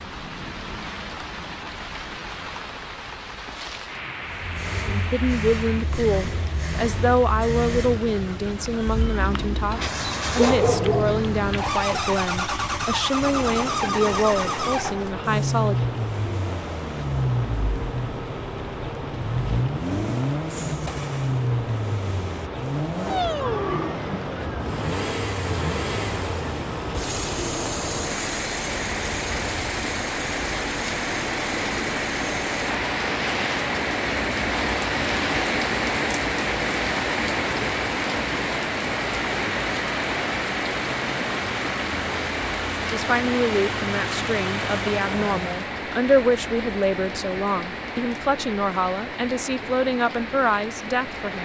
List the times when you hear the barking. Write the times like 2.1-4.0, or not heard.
10.3-11.2.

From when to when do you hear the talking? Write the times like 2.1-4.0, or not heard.
4.8-15.8, 42.9-51.4.